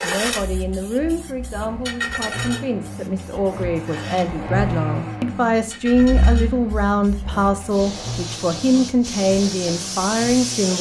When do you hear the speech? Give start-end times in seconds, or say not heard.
0.0-10.7.